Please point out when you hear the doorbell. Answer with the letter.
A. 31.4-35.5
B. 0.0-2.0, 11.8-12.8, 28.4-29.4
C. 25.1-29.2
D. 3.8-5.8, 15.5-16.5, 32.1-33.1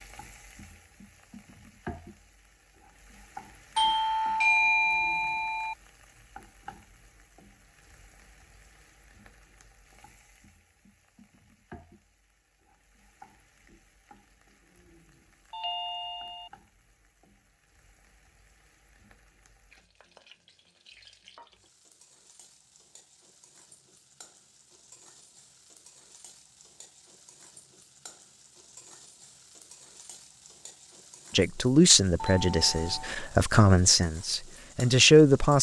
D.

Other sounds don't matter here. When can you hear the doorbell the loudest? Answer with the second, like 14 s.
5 s.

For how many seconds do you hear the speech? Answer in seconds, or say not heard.
4 s.